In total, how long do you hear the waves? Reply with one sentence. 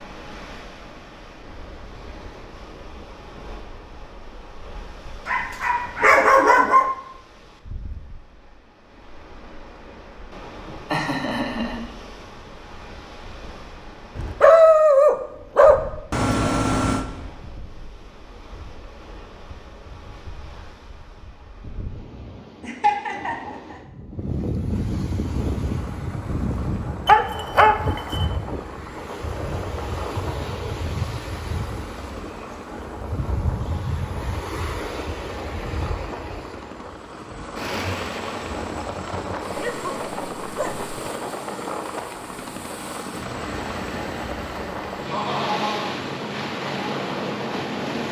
The waves can be heard for 48 seconds in total.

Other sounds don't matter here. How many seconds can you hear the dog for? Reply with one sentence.
You can hear the dog for 7 seconds altogether.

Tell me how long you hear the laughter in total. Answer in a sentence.
You can hear the laughter for 3 seconds altogether.